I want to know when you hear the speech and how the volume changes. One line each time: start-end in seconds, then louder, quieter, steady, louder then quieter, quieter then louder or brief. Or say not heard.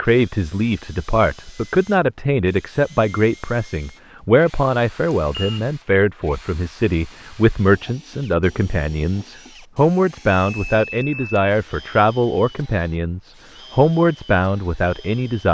0.0-15.4 steady.